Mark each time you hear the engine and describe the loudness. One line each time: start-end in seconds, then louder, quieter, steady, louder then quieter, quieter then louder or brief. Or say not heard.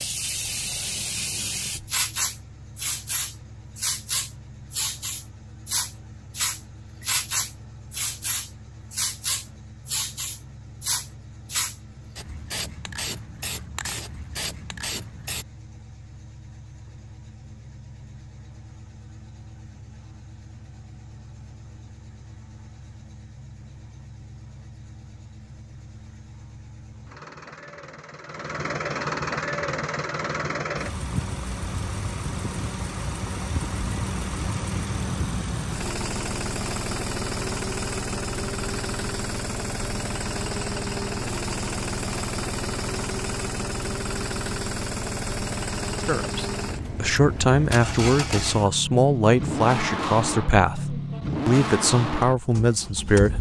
0.0-53.3 louder.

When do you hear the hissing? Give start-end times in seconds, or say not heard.
0.0-15.4.